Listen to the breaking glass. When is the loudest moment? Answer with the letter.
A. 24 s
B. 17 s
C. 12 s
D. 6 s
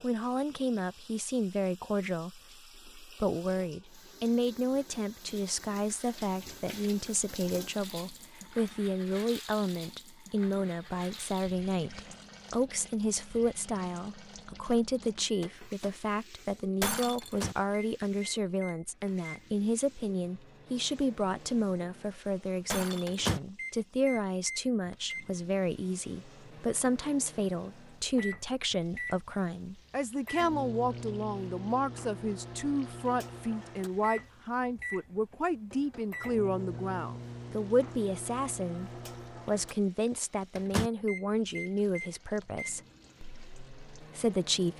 B.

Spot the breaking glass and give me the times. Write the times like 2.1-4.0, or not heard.
16.8-17.5, 22.7-23.4.